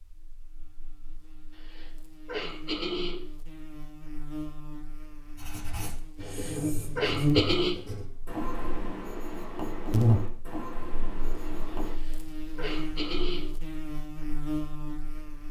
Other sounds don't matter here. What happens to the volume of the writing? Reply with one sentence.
The volume of the writing goes up, then down.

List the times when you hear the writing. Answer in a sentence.
The writing can be heard from 5.3 to 11.9 s.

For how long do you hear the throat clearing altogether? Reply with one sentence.
You can hear the throat clearing for 5 seconds altogether.